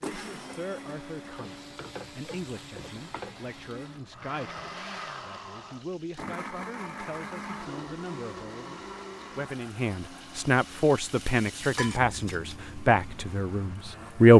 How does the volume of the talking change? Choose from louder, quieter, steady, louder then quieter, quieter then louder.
louder.